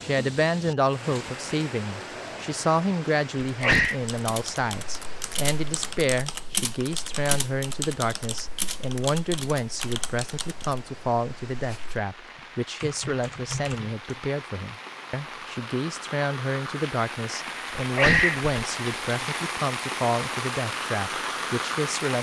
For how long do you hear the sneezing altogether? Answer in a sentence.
The sneezing can be heard for 2 seconds in total.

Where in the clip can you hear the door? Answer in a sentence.
The door can't be heard in this clip.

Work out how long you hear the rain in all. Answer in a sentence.
You can hear the rain for 22 seconds altogether.